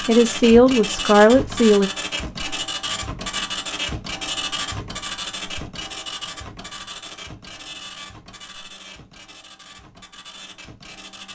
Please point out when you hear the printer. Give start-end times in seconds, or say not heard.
0.0-11.3.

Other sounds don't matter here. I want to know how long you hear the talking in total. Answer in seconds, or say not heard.
2 s.